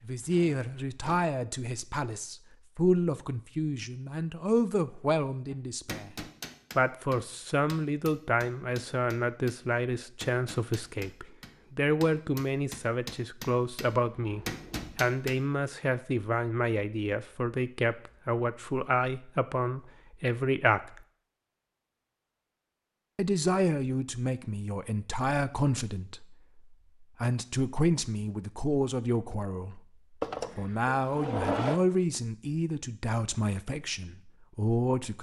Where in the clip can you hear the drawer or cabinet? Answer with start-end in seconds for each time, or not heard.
0.2-1.2, 14.2-15.1, 30.2-31.8.